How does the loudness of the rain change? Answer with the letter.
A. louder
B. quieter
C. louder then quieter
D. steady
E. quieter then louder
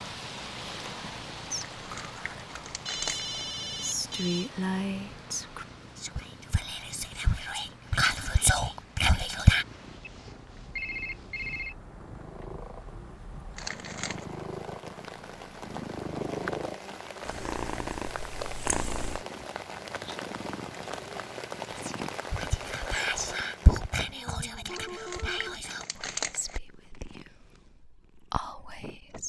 E.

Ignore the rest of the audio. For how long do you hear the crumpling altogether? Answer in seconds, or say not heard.
4 s.